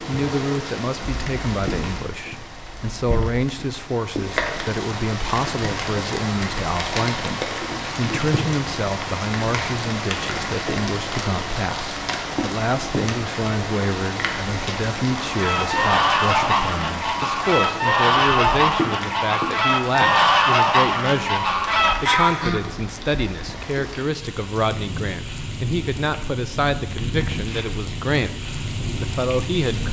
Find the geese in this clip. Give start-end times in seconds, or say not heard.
15.2-22.6.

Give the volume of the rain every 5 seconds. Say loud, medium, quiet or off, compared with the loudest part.
loud, loud, loud, loud, medium, loud.